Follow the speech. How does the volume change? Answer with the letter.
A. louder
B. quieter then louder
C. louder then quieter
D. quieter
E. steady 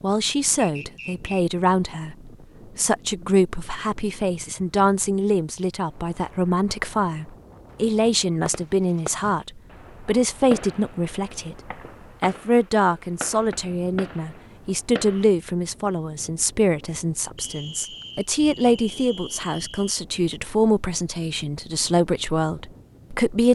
E.